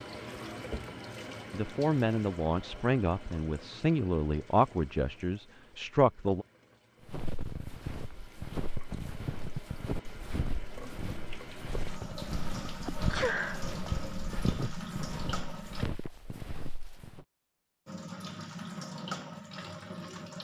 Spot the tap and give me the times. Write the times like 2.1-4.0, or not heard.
0.0-15.8, 17.9-20.3.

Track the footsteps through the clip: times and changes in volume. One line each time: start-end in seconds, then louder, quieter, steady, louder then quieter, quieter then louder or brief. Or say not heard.
7.0-17.2 steady.